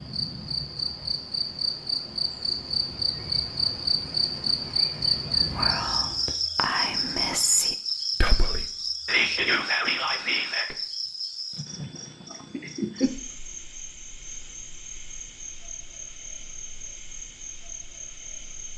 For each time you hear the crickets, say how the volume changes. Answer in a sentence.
The crickets can be heard from 0.0 to 18.7 s, getting quieter.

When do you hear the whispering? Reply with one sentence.
The whispering can be heard from 5.5 to 10.8 s.